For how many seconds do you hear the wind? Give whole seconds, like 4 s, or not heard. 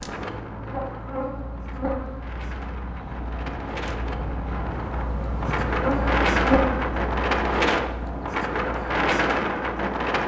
10 s.